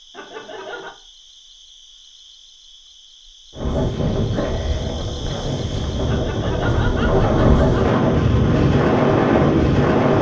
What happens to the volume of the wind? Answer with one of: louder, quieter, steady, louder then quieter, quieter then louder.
louder.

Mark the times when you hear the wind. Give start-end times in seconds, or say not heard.
3.5-10.1.